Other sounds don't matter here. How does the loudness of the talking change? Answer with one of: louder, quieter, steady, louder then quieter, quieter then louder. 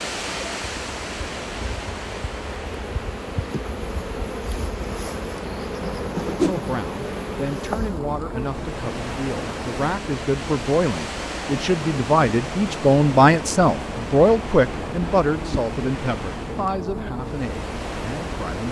louder then quieter.